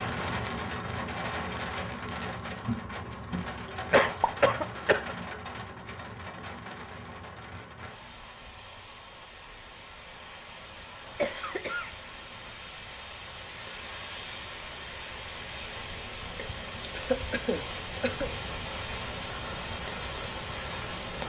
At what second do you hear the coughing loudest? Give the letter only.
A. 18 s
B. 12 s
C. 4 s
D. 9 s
C.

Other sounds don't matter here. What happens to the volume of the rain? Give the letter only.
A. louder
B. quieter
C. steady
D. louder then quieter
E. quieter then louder
E.